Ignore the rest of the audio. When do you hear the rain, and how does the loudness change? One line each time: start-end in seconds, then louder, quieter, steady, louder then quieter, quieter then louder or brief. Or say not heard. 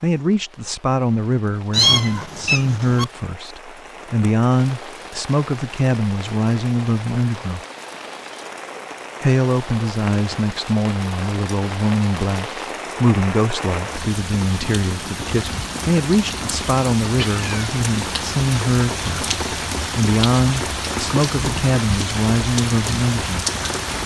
0.0-24.0 louder.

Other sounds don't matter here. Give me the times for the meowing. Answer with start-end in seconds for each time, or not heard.
1.7-3.0, 17.1-17.7.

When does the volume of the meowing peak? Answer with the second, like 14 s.
2 s.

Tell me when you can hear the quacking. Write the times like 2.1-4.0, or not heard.
not heard.